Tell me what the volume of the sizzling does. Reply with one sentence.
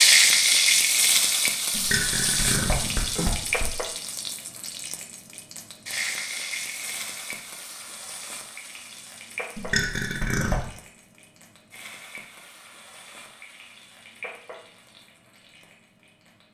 The loudness of the sizzling goes down.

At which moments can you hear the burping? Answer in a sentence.
The burping can be heard from 1.7 to 3.7 s and from 9.6 to 10.7 s.